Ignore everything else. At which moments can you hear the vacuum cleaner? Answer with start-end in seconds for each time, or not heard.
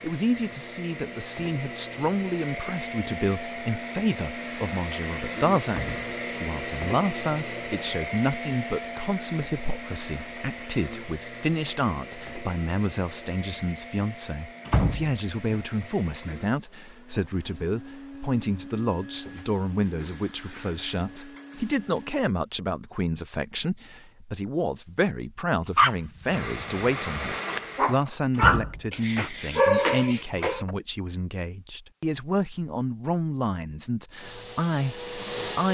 0.0-22.2, 26.2-27.9, 34.1-35.6.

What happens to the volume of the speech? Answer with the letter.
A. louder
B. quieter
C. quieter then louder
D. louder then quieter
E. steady
E.